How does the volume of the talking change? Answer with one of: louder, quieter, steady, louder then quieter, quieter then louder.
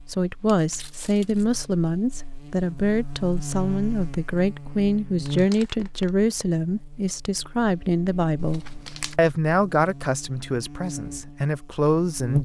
steady.